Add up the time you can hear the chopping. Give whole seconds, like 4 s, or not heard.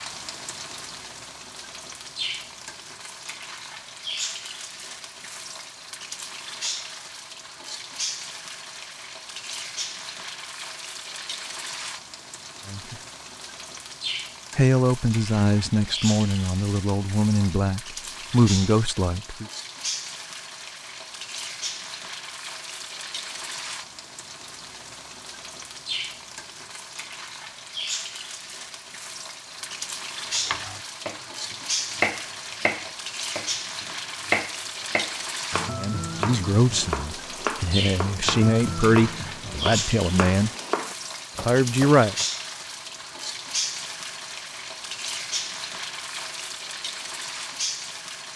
12 s.